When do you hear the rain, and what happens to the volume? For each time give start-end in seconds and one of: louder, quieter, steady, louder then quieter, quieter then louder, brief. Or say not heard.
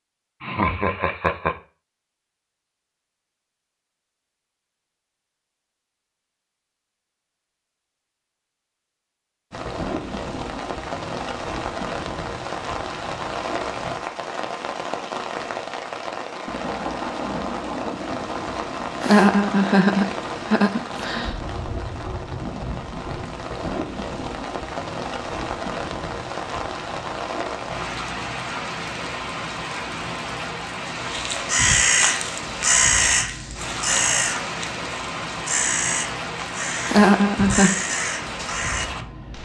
9.5-39.3 steady.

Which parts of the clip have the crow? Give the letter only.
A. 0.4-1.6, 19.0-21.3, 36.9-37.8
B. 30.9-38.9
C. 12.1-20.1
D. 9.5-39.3
B.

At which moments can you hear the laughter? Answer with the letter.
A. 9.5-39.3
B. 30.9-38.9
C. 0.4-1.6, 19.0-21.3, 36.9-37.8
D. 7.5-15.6
C.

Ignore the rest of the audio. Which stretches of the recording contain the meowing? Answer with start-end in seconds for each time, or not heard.
not heard.